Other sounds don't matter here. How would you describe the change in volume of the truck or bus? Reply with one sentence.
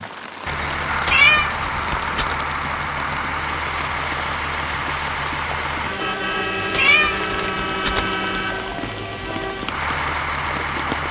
The loudness of the truck or bus stays about the same.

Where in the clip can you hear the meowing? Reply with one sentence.
You can hear the meowing from 1.1 to 2.4 s and from 6.7 to 8.1 s.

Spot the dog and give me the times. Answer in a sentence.
The dog can't be heard in this clip.